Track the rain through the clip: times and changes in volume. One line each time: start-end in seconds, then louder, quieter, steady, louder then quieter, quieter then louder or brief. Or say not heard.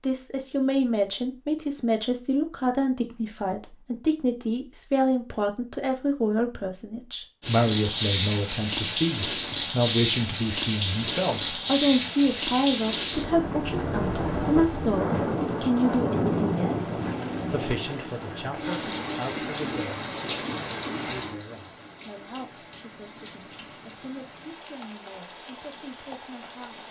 7.4-26.8 quieter.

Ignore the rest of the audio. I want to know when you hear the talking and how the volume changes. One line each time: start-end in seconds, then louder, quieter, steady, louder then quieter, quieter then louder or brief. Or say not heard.
0.0-26.8 quieter.